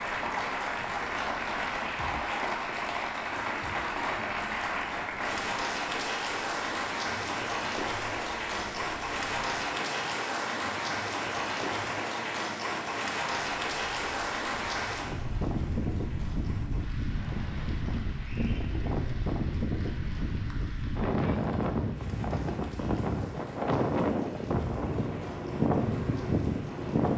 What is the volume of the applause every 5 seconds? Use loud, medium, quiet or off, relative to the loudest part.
loud, loud, loud, quiet, quiet, quiet.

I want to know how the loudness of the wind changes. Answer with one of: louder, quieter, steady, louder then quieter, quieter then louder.
louder.